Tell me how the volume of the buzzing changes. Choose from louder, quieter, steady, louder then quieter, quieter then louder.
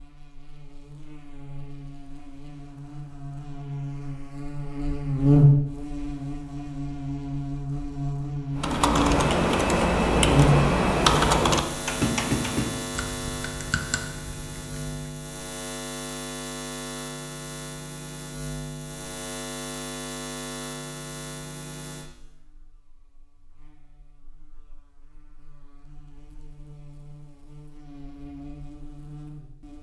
quieter.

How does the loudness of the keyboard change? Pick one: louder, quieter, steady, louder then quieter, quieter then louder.
quieter.